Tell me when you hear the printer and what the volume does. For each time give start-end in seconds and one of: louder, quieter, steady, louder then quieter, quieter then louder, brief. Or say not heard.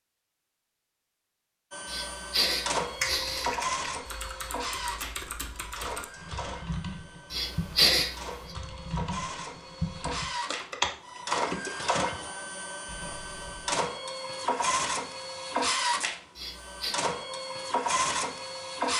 1.7-18.9 quieter then louder.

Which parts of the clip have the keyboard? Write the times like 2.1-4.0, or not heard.
3.0-13.7.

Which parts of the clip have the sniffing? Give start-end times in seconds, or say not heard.
1.9-3.5, 7.3-8.2, 16.4-16.9.